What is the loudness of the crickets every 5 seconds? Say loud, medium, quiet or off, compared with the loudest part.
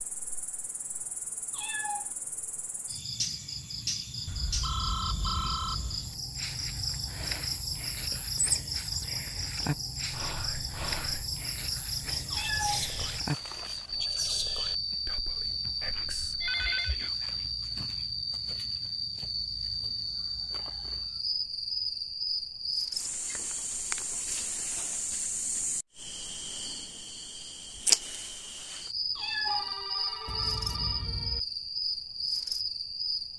medium, loud, loud, loud, loud, loud, loud.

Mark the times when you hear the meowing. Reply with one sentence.
The meowing can be heard from 1.5 to 2.1 s, from 12.3 to 12.9 s and from 29.1 to 29.8 s.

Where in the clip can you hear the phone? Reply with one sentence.
The phone can be heard from 4.2 to 6.2 s, from 15.4 to 17.1 s and from 29.4 to 31.4 s.